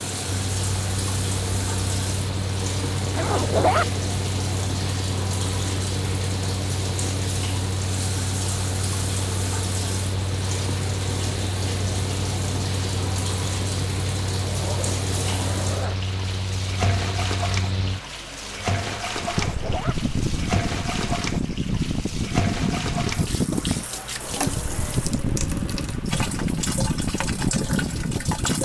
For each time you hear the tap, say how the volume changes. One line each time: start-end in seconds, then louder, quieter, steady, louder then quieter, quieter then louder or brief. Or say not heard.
0.0-28.6 steady.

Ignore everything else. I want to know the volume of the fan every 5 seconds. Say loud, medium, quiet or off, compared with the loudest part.
medium, medium, medium, medium, loud, loud.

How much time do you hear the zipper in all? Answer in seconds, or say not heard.
3 s.